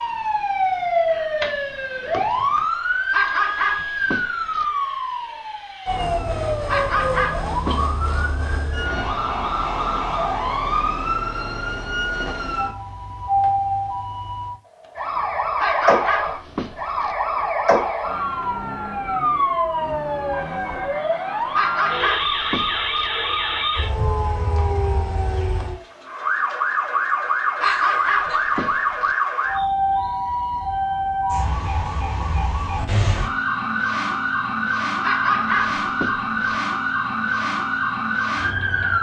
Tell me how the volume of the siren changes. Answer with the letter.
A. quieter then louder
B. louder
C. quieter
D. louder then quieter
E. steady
E.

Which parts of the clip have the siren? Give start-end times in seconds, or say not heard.
0.0-38.9.